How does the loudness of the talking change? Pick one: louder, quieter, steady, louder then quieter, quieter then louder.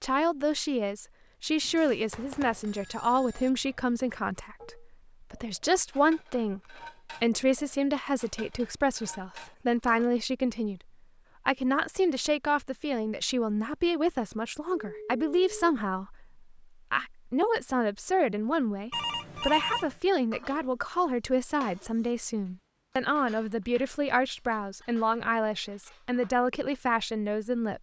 steady.